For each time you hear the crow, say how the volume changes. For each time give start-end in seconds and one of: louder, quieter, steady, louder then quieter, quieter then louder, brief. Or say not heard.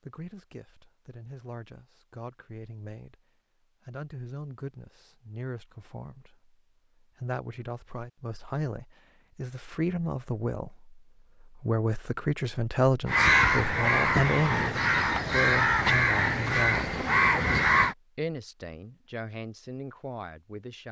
13.1-17.9 steady.